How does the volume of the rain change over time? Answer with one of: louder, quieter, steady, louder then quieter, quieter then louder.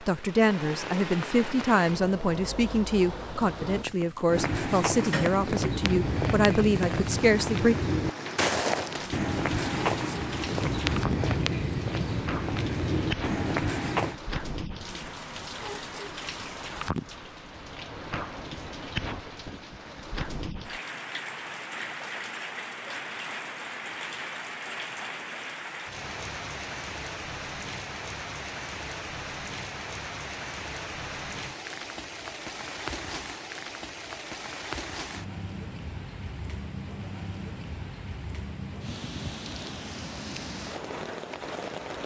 steady.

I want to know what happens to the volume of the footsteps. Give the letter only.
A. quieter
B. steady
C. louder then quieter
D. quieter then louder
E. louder
B.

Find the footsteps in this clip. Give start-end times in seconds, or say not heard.
4.2-14.2.